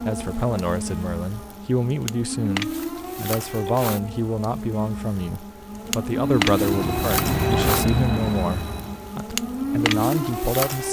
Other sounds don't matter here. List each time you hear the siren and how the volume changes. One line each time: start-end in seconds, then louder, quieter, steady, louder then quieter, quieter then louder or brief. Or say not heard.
0.0-10.8 louder.